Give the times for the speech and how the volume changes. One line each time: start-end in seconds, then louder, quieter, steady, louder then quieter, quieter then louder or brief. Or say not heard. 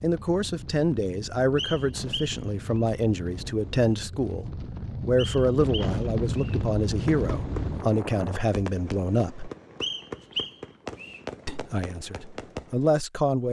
0.0-9.5 steady
11.4-13.4 brief.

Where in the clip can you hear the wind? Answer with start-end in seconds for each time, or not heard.
0.0-8.4.